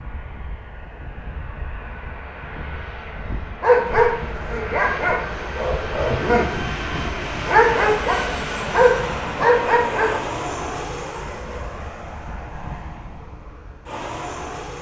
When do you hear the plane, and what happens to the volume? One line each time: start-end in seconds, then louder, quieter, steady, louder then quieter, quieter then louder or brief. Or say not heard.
0.0-14.7 louder then quieter.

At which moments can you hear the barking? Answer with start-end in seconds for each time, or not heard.
3.6-10.4.